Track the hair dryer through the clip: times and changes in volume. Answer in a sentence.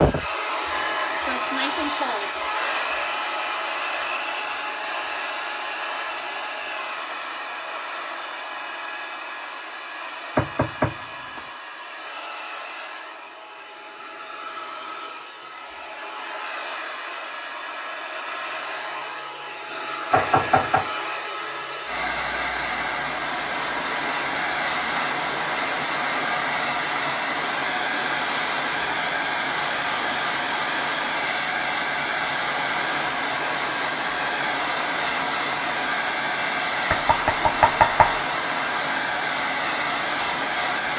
The hair dryer can be heard from 0.0 to 40.9 s, getting quieter then louder.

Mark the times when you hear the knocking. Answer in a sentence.
The knocking can be heard from 10.3 to 11.4 s, from 20.1 to 20.9 s and from 36.9 to 38.2 s.